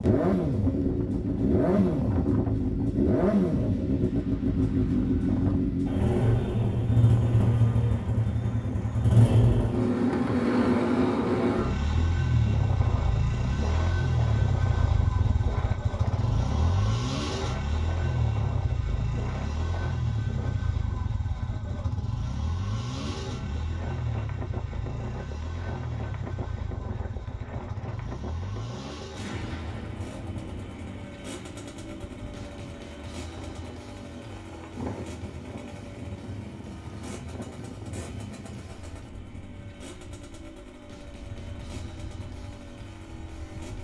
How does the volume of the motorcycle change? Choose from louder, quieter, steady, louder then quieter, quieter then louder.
quieter.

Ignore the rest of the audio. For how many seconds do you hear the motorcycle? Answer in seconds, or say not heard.
44 s.